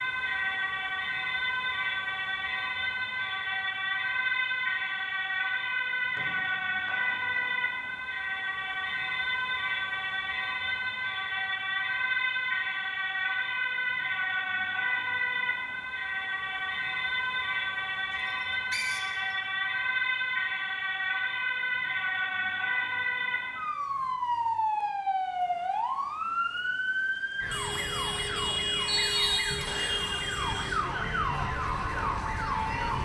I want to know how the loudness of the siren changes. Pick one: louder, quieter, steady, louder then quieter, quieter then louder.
steady.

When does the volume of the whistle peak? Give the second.
29 s.